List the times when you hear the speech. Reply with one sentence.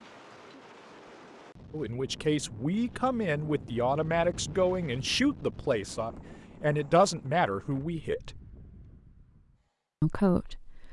You can hear the speech from 1.7 to 8.4 s and from 10.0 to 10.8 s.